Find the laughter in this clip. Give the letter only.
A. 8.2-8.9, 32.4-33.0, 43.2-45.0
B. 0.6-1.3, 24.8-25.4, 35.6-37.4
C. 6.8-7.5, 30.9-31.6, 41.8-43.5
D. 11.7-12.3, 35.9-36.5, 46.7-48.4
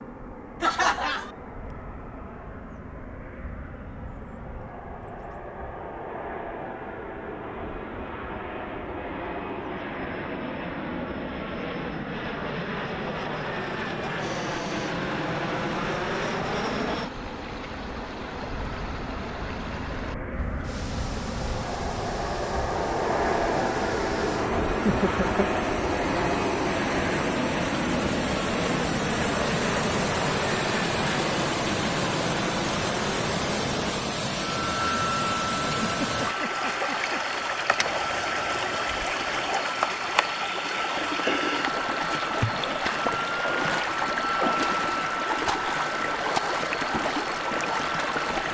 B.